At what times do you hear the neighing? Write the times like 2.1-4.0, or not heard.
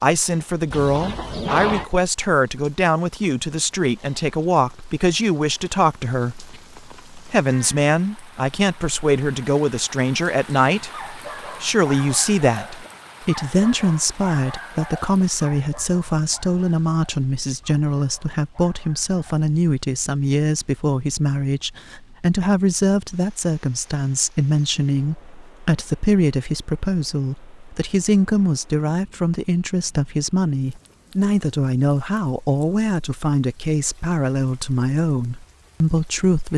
0.7-1.9.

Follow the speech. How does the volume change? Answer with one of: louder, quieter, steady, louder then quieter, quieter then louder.
steady.